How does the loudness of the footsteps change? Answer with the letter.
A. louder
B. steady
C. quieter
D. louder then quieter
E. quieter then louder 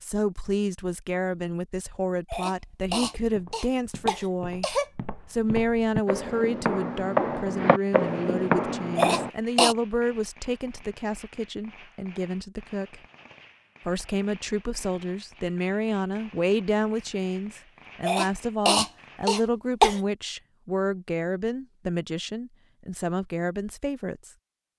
A.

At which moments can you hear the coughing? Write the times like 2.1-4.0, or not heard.
2.3-4.8, 8.9-9.8, 18.0-20.0.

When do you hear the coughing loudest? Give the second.
20 s.